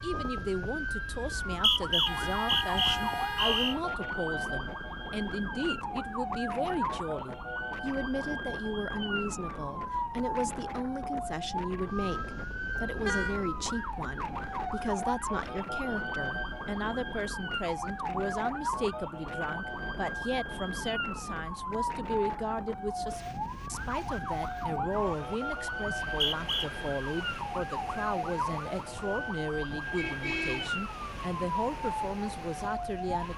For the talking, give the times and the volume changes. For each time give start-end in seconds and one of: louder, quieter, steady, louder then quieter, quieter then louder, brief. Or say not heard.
0.0-33.3 steady.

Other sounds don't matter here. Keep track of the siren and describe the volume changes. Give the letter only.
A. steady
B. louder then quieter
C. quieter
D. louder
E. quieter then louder
A.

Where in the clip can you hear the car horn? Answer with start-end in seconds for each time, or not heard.
2.0-3.8, 12.7-13.4, 29.9-30.7.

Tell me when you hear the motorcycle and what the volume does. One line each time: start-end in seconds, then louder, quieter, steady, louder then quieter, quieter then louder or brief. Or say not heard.
not heard.